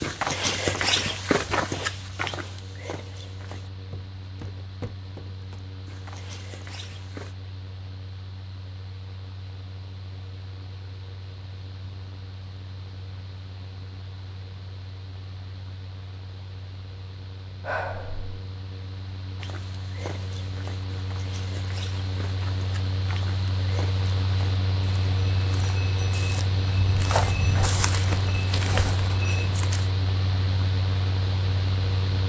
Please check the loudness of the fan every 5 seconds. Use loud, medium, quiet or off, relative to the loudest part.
quiet, quiet, quiet, quiet, loud, loud, loud.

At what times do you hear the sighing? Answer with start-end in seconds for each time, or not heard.
17.6-18.4.